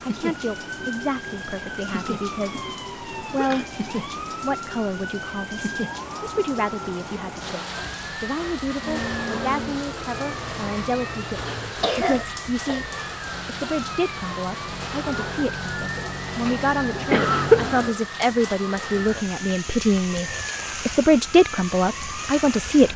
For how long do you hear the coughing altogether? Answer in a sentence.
You can hear the coughing for 4 seconds altogether.